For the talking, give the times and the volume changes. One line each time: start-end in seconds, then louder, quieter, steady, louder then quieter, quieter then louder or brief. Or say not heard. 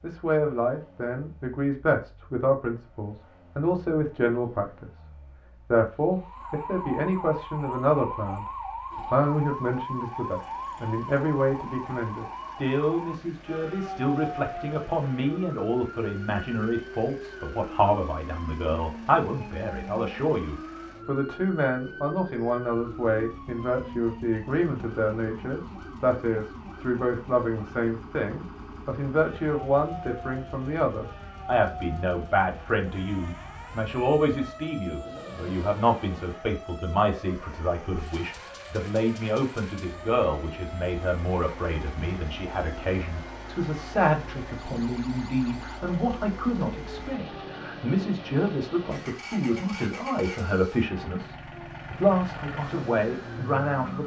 0.0-4.9 steady
5.7-54.0 steady.